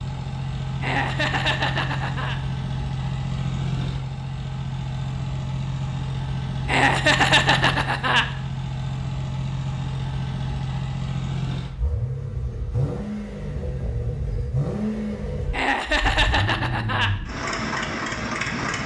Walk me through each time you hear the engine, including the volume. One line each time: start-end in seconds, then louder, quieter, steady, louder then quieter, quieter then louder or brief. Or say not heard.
0.0-18.8 steady.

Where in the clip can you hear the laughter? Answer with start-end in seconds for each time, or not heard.
0.8-2.4, 6.7-8.2, 15.5-17.1.